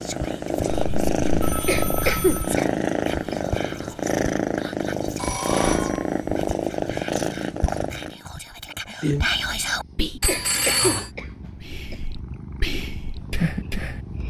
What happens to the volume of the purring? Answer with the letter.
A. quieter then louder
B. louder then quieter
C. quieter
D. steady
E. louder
C.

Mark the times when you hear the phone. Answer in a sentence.
The phone can be heard from 0.7 to 2.5 s, from 5.2 to 6.5 s and from 10.2 to 11.1 s.